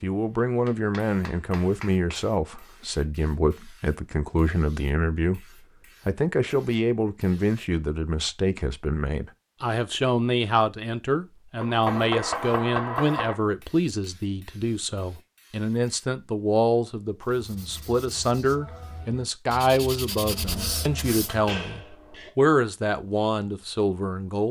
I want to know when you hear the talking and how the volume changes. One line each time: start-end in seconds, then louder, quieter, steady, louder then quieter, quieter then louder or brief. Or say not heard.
0.0-24.4 steady.